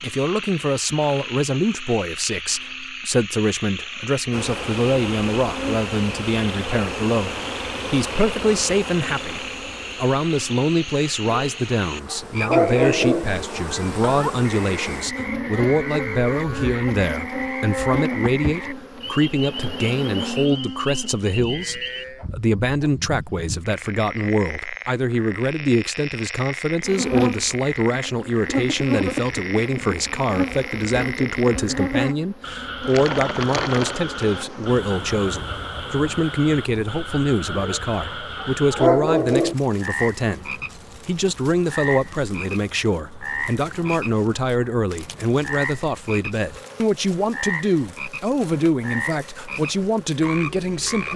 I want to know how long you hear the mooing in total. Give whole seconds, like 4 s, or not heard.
7 s.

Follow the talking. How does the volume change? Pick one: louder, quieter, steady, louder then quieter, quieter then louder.
steady.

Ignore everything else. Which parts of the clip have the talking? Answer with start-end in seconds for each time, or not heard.
0.0-51.1.